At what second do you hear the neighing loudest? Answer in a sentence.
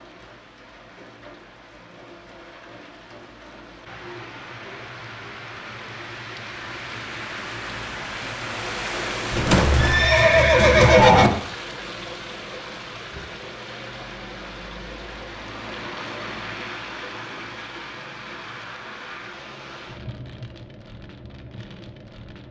The loudest moment of the neighing is at 11 seconds.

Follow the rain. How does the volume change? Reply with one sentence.
The volume of the rain goes up, then down.